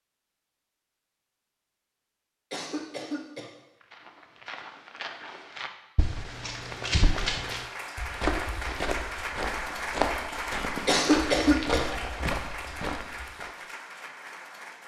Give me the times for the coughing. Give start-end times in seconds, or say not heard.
2.5-3.5, 10.8-11.8.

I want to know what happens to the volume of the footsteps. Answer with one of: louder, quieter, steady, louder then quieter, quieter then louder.
louder.